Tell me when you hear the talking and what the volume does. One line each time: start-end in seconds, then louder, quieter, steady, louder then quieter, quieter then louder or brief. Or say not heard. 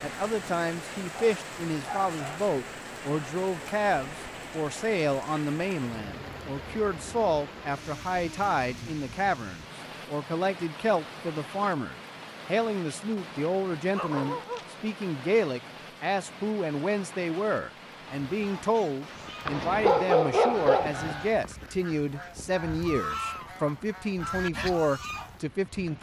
0.0-25.9 steady.